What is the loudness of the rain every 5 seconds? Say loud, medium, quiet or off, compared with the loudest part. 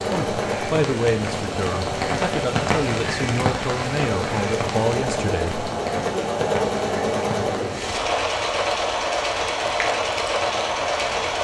loud, medium, medium.